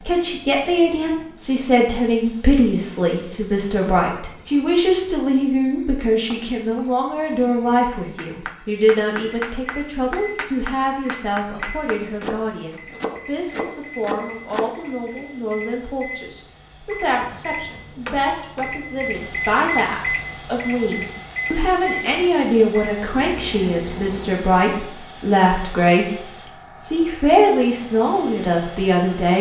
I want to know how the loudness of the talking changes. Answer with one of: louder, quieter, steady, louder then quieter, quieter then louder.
quieter then louder.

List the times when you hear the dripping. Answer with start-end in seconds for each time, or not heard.
not heard.